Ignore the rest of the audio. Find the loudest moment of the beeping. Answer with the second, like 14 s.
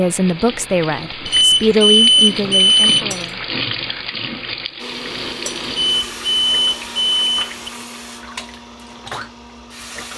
2 s.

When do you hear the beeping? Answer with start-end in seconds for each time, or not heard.
1.2-3.0, 5.7-7.7.